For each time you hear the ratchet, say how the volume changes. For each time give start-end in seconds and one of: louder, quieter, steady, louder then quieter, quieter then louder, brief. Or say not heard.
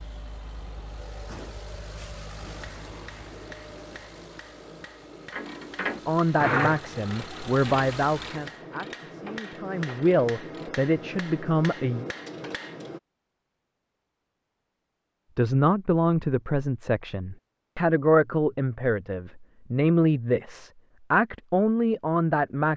5.3-10.8 quieter.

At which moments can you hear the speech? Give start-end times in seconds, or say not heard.
6.0-12.1, 15.3-22.7.